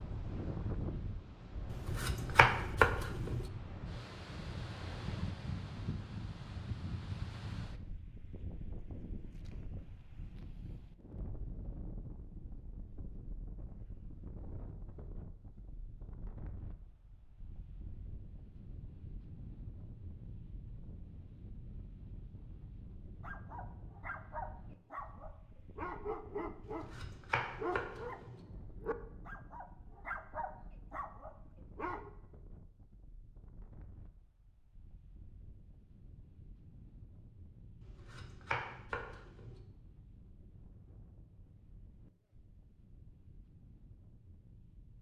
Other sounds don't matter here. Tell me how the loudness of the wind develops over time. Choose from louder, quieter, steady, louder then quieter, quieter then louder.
quieter.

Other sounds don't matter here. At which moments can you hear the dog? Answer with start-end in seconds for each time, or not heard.
23.2-26.9, 27.6-32.1.